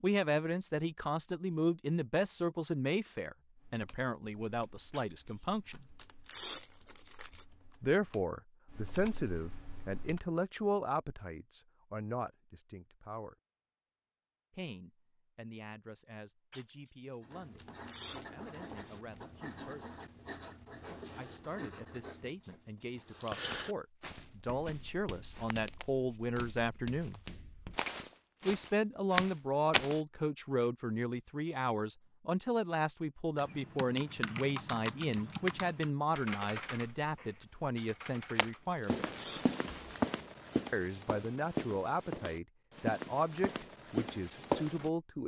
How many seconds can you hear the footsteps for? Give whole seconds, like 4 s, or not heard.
13 s.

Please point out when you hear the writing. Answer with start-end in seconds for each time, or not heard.
17.2-27.8.